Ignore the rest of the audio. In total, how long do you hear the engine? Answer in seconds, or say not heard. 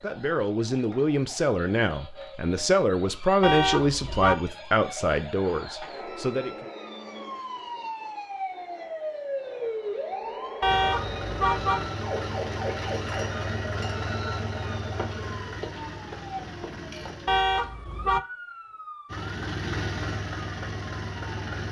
9 s.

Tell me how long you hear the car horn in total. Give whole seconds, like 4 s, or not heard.
3 s.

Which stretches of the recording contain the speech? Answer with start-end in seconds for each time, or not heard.
0.0-6.7.